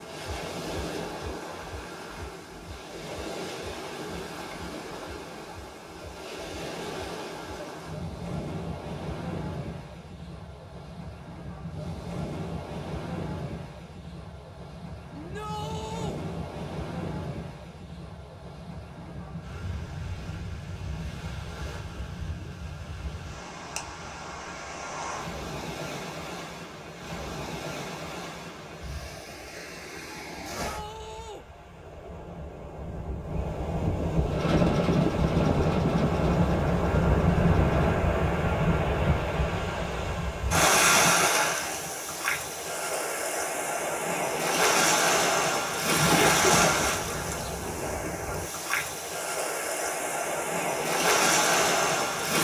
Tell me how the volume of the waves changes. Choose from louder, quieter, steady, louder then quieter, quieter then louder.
louder.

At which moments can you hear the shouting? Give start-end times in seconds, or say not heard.
15.2-16.2, 30.6-31.4.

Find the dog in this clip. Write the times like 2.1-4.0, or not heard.
not heard.